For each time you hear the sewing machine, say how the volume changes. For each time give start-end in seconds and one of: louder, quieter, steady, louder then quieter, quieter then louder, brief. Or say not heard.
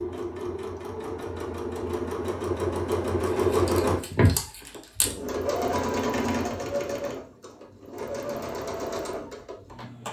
0.0-10.0 louder then quieter.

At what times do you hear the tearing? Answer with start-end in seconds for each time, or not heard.
3.2-5.2.